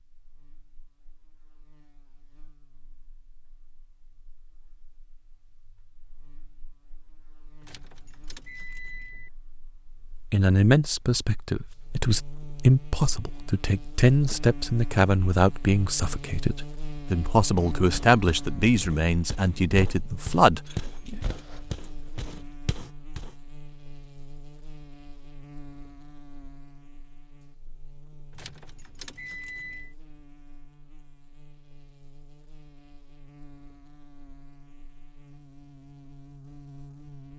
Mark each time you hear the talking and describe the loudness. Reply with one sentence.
The talking can be heard from 10.3 to 21.1 s, at a steady volume.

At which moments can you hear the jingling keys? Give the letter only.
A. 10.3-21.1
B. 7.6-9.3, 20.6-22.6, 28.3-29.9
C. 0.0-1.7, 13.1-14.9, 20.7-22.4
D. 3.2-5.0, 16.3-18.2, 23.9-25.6
B.